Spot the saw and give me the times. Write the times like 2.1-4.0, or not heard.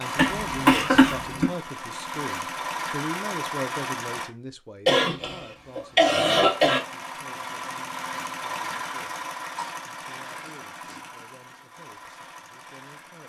not heard.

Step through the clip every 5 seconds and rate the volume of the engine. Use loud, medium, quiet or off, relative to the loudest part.
loud, loud, medium.